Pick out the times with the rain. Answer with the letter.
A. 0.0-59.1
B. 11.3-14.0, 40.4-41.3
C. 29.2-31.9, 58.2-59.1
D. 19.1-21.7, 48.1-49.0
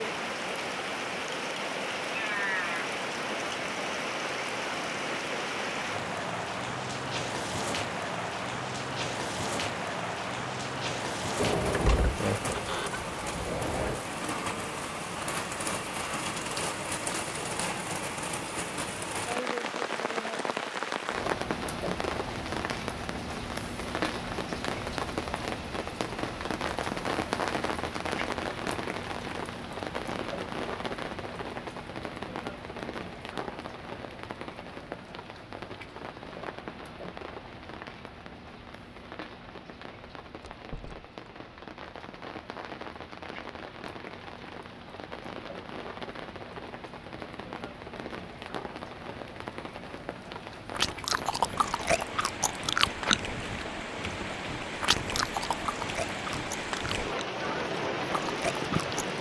A.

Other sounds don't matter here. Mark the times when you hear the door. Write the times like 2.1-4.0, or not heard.
11.3-14.0, 40.4-41.3.